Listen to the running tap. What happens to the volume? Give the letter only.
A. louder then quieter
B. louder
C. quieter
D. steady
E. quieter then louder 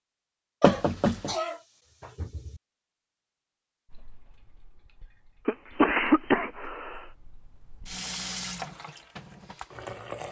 A.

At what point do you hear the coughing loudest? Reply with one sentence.
The volume of the coughing peaks at 6 seconds.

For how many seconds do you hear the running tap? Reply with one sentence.
The running tap can be heard for 6 seconds in total.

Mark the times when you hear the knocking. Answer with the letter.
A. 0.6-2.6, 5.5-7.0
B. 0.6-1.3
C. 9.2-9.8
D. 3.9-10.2
B.